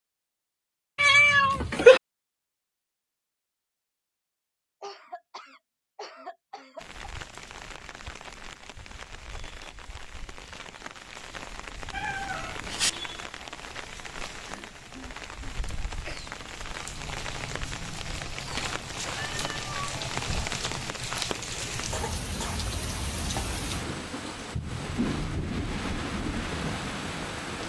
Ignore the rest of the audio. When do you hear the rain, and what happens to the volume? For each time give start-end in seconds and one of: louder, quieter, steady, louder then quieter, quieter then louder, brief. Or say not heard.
6.8-27.6 louder.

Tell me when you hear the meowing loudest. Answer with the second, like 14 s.
2 s.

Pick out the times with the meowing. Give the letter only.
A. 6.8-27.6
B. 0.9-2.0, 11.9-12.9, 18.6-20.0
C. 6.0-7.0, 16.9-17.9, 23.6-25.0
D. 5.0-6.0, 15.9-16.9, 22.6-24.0
B.